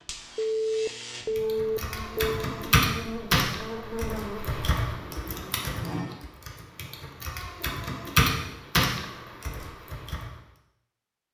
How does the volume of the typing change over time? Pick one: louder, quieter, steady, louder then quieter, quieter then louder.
quieter then louder.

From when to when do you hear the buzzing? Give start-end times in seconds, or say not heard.
0.0-6.2.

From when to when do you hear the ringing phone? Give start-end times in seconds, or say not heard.
0.3-2.4.